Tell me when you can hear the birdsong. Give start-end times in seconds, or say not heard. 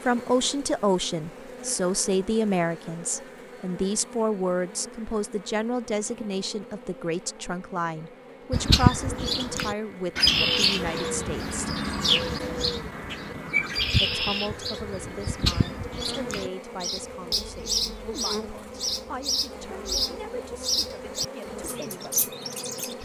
8.5-23.0.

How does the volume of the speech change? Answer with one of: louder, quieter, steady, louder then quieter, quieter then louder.
quieter.